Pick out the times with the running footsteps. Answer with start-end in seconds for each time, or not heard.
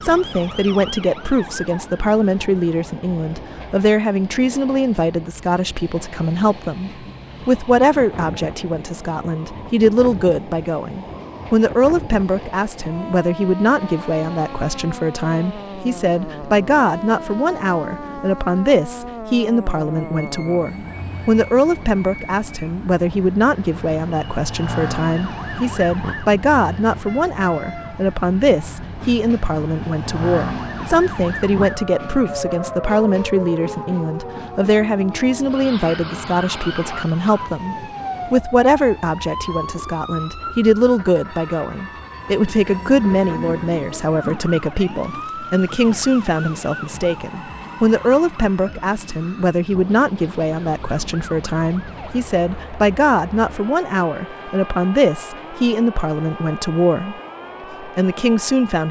not heard.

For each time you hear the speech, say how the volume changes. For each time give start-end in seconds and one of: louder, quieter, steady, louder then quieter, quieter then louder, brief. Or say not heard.
0.0-57.1 steady
57.8-58.8 brief.